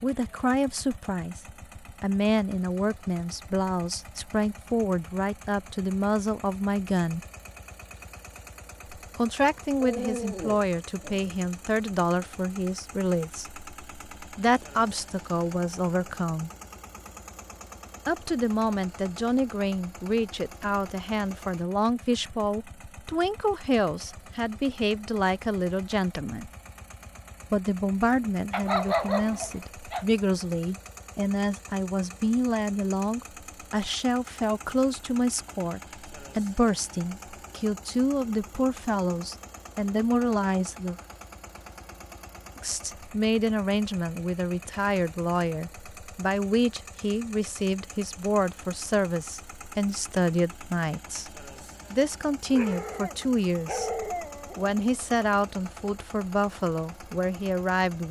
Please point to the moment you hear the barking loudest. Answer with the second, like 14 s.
29 s.